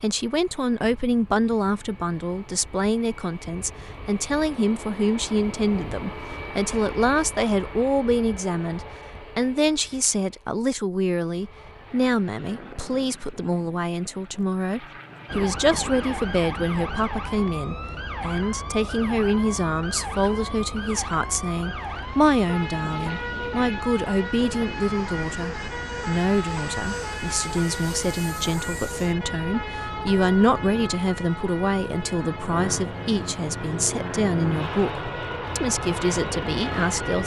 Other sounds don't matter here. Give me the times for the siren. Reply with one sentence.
You can hear the siren from 15.2 to 37.2 s.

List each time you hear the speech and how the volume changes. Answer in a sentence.
You can hear the speech from 0.0 to 37.2 s, at a steady volume.